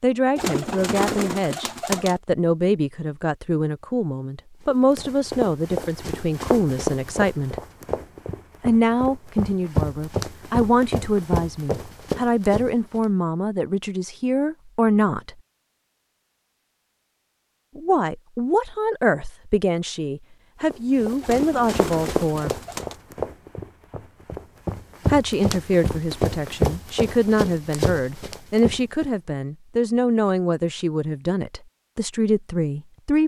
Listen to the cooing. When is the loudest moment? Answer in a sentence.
The loudest moment of the cooing is at 1 second.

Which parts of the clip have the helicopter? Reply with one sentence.
The helicopter can't be heard in this clip.